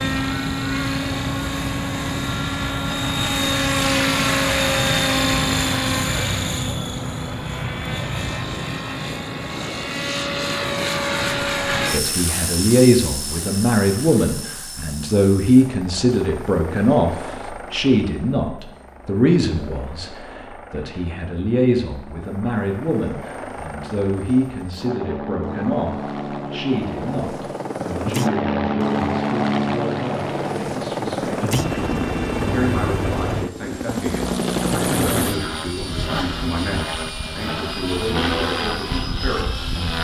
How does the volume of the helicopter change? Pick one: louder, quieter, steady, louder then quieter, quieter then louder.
quieter then louder.